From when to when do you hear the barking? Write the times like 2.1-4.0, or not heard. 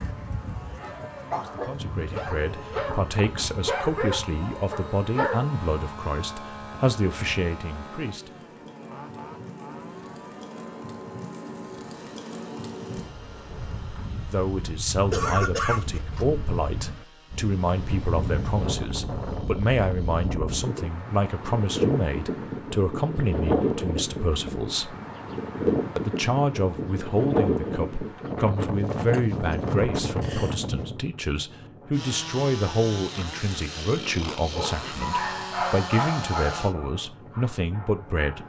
0.0-5.5, 34.5-38.4.